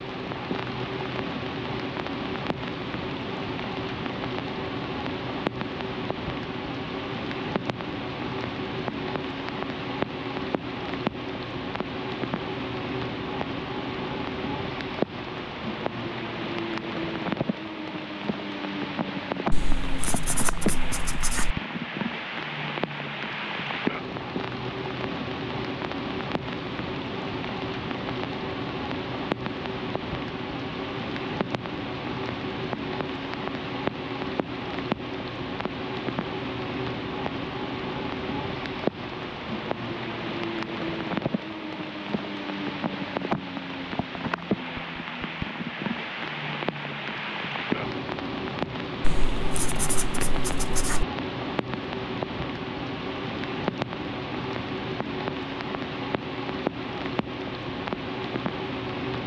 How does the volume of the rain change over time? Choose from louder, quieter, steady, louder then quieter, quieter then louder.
steady.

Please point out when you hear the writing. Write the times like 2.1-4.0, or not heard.
19.5-21.6, 49.0-51.0.